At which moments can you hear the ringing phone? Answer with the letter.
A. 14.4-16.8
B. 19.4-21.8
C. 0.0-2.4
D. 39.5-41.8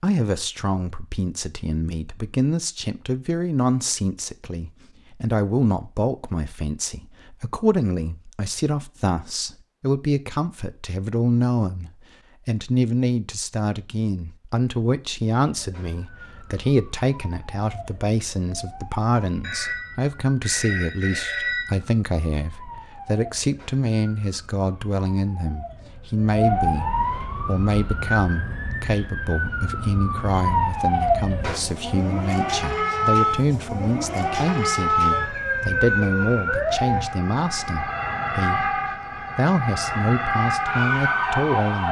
B.